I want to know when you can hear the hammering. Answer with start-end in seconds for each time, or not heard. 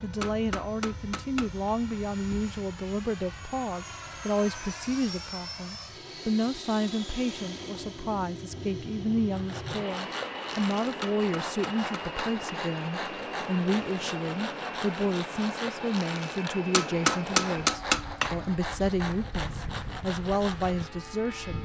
0.2-1.7, 11.0-12.3, 16.7-18.3.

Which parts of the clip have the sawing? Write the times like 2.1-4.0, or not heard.
9.3-20.9.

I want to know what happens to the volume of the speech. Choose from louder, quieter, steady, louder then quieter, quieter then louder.
steady.